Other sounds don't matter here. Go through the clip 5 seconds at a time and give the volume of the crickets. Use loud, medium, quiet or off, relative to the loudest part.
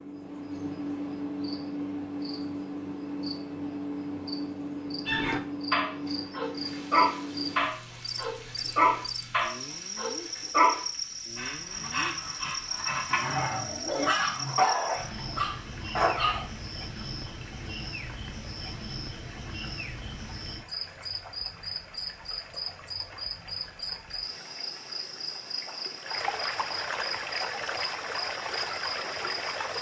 loud, loud, loud, medium, loud, loud.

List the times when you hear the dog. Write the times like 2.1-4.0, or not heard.
5.0-16.4.